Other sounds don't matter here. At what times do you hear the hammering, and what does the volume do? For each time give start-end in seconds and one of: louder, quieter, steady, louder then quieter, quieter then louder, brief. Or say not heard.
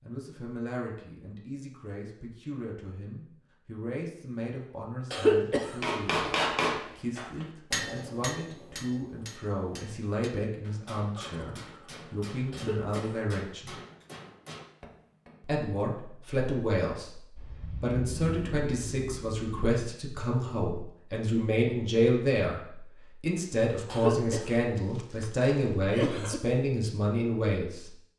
5.8-15.4 quieter.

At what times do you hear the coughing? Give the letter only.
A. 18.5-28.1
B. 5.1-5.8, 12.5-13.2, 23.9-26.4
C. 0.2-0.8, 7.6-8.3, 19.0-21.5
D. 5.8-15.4
B.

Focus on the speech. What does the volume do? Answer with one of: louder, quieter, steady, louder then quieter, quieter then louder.
louder.